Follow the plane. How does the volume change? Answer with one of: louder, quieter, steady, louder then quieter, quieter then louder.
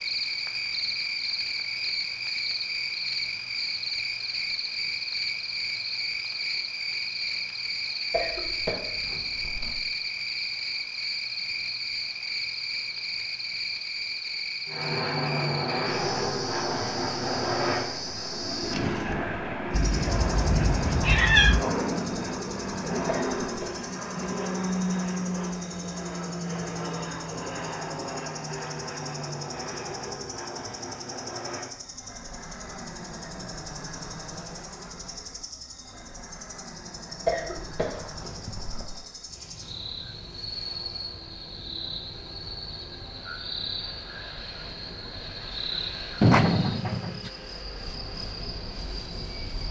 quieter.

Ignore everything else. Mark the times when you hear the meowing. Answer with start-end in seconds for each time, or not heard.
19.7-21.6, 46.2-47.3.